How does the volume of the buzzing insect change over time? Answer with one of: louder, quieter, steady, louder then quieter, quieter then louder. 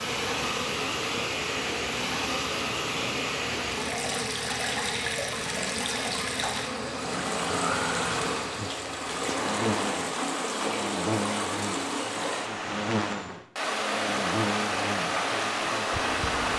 steady.